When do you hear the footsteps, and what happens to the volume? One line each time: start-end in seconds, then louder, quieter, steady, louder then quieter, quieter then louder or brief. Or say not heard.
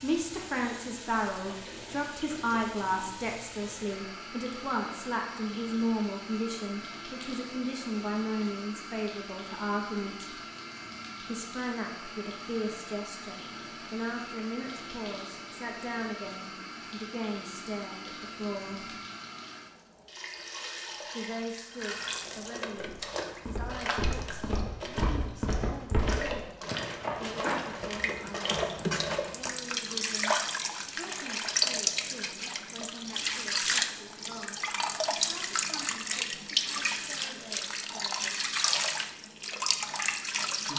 22.8-28.9 steady.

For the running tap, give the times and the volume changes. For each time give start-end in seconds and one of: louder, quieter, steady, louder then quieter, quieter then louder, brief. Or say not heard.
0.0-40.7 louder.